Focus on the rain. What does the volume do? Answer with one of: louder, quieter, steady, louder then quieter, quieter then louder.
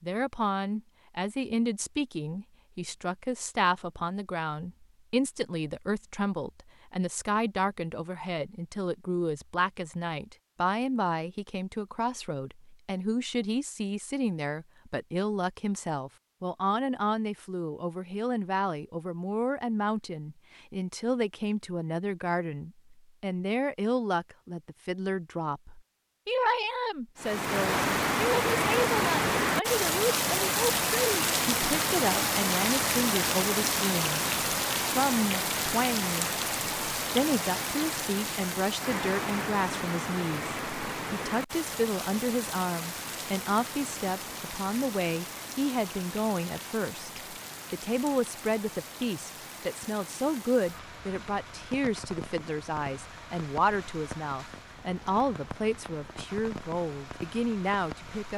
quieter.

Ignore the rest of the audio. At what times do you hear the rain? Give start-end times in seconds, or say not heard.
27.1-58.3.